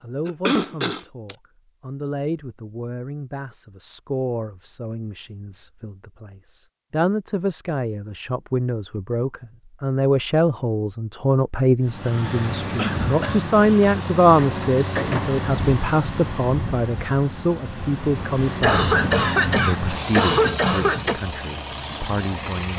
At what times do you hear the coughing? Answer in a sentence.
The coughing can be heard from 0.2 to 1.4 s, from 12.8 to 13.4 s and from 18.6 to 21.2 s.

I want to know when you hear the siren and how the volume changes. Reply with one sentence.
The siren can't be heard in this clip.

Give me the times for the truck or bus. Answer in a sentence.
The truck or bus can be heard from 11.8 to 22.7 s.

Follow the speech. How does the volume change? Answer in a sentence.
The volume of the speech goes up, then down.